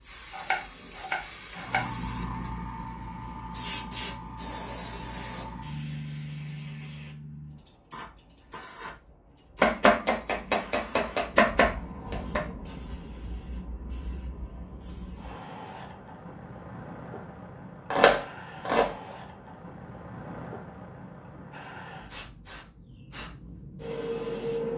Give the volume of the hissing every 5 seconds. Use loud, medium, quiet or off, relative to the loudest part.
loud, loud, medium, medium, loud.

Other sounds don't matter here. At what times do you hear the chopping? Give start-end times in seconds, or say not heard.
0.3-1.9, 9.6-12.4, 17.9-18.9.